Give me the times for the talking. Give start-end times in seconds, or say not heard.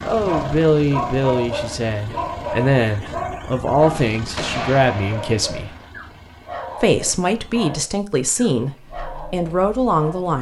0.0-5.8, 6.8-10.3.